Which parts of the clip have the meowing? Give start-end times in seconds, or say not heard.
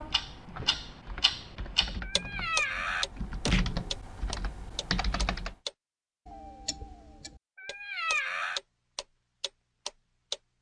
2.0-3.6, 7.5-8.6.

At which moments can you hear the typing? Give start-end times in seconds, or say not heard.
0.0-5.5.